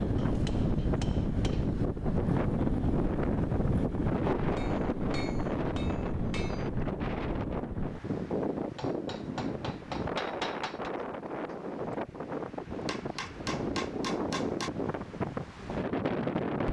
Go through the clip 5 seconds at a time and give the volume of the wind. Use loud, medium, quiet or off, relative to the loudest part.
loud, loud, medium, loud.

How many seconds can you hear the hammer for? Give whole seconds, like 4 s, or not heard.
8 s.